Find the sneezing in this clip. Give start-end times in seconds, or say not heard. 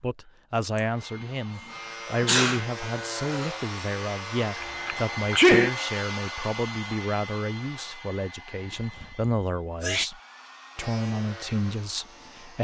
2.1-2.6, 4.6-5.7, 8.7-10.1.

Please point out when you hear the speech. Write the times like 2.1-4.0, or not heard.
0.0-12.5.